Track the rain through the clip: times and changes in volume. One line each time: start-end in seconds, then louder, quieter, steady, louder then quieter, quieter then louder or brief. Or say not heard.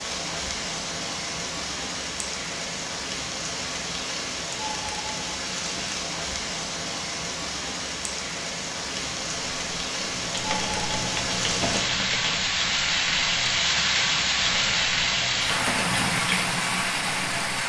0.0-17.6 louder.